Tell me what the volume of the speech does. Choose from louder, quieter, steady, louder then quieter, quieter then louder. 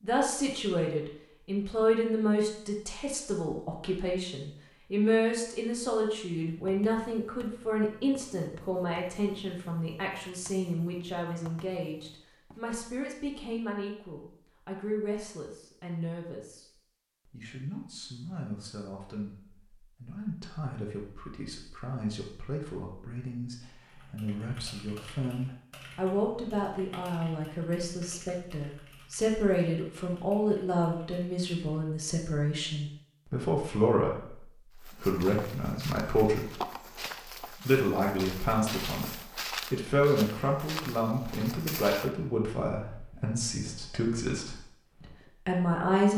quieter then louder.